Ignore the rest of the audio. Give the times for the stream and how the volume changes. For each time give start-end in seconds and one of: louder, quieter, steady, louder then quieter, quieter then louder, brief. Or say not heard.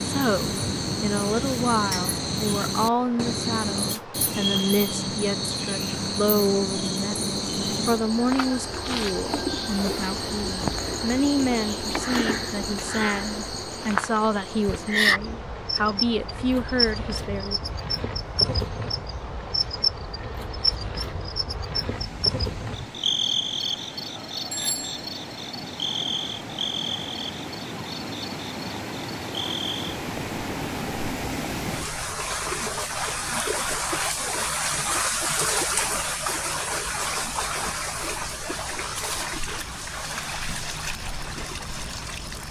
0.0-42.4 louder.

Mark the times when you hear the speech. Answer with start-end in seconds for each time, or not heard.
0.0-17.6.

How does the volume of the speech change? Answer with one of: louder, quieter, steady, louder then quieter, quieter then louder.
steady.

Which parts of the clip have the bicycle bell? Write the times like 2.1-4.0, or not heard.
24.5-25.1.